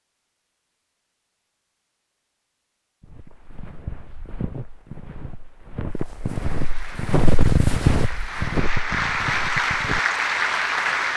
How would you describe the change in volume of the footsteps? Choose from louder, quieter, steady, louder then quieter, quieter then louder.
louder then quieter.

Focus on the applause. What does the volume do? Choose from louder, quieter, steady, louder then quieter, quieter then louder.
louder.